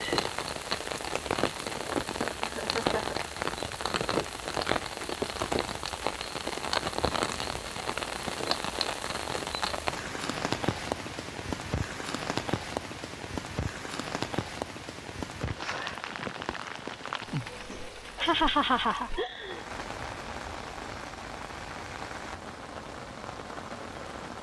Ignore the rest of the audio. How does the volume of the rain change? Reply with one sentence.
The loudness of the rain goes down.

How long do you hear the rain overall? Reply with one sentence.
The rain can be heard for 24 seconds in total.